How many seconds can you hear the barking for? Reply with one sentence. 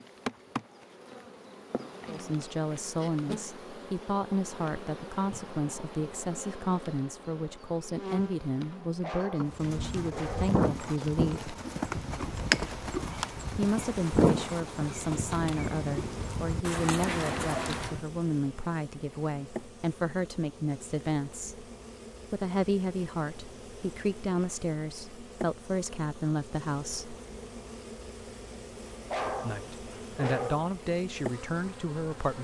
The barking can be heard for 3 seconds in total.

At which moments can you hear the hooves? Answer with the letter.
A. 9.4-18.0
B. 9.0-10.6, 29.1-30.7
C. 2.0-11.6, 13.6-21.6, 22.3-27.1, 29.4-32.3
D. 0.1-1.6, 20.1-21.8
A.